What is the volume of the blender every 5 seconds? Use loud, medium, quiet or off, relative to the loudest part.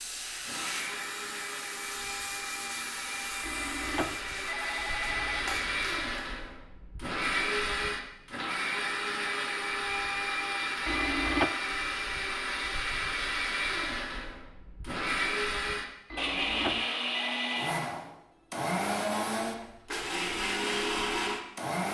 medium, loud, loud, loud, loud.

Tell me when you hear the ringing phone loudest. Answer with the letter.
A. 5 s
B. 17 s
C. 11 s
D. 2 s
C.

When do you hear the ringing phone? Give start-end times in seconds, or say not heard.
3.4-5.5, 10.8-11.5, 16.1-17.7.